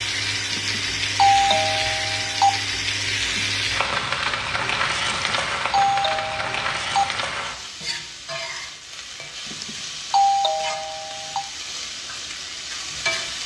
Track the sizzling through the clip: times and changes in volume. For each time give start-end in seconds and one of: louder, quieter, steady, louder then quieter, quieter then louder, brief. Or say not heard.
0.0-13.4 quieter.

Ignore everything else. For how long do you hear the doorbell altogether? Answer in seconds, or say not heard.
6 s.